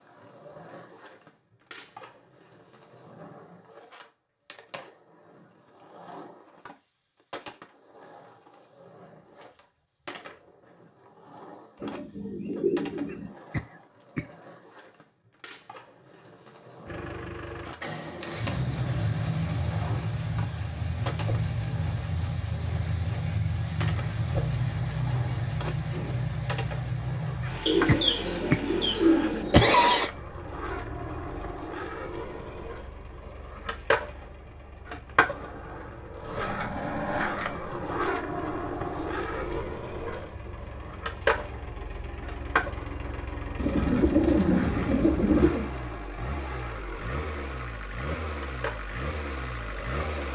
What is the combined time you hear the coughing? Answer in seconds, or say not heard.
4 s.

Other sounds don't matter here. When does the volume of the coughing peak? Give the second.
30 s.